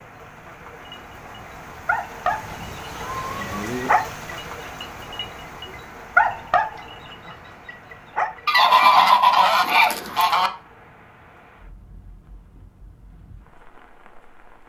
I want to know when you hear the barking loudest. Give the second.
6 s.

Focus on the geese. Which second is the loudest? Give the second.
9 s.